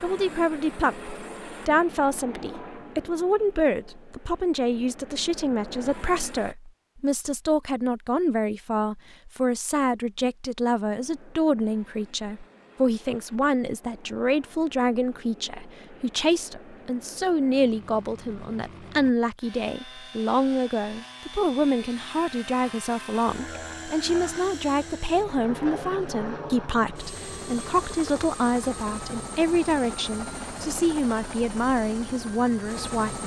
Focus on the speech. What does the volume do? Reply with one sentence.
The loudness of the speech stays about the same.